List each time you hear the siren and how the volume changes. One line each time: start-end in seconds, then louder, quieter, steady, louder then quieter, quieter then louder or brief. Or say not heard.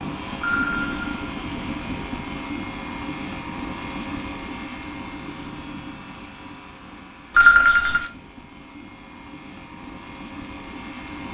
not heard.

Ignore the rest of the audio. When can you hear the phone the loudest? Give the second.
8 s.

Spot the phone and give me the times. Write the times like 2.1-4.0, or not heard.
0.4-1.2, 7.3-8.1.